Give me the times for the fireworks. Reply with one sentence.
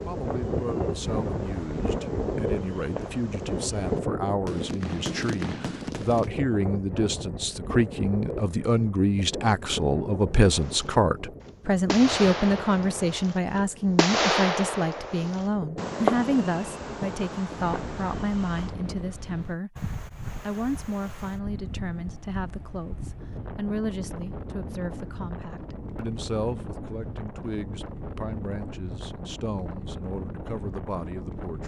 The fireworks can be heard from 0.0 to 6.3 s and from 10.4 to 18.8 s.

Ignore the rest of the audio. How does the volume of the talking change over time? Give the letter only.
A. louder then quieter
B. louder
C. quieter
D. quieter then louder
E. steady
A.